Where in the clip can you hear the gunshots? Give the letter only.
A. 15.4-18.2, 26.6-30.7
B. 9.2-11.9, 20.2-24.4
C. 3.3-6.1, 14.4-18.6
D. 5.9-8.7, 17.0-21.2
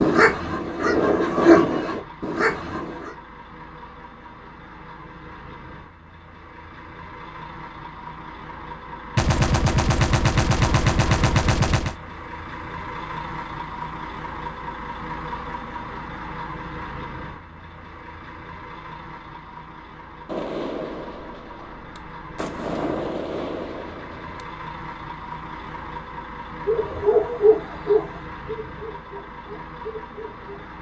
B.